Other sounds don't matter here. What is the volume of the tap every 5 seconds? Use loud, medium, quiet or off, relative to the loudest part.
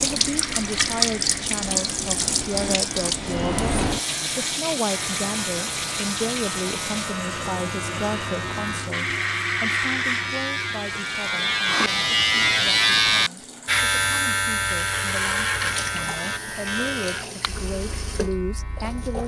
loud, medium, quiet, medium.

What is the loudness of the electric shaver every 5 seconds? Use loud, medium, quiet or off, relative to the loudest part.
quiet, medium, loud, medium.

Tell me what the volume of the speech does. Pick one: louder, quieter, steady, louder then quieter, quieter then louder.
quieter then louder.